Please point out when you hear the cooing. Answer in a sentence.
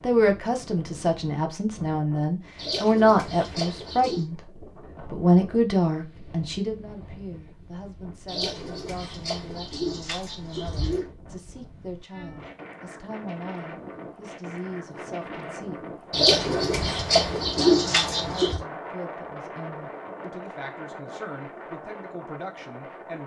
You can hear the cooing from 2.5 to 4.2 s, from 8.2 to 11.1 s and from 16.1 to 18.6 s.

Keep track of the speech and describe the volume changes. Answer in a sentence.
The volume of the speech goes down.